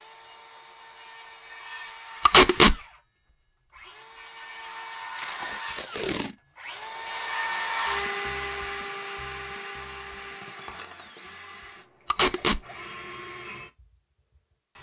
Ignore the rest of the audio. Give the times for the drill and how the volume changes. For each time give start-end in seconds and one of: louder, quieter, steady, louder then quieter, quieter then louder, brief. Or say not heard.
0.0-14.7 louder then quieter.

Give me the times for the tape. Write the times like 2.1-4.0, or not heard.
2.2-2.8, 5.2-6.3, 12.1-12.6.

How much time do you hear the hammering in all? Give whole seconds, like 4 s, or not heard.
not heard.